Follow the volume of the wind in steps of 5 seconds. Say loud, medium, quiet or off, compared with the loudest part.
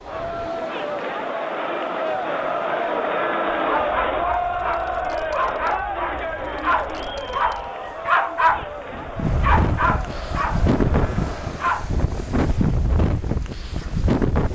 quiet, medium, loud.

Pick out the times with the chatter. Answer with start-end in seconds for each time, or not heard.
0.0-11.8.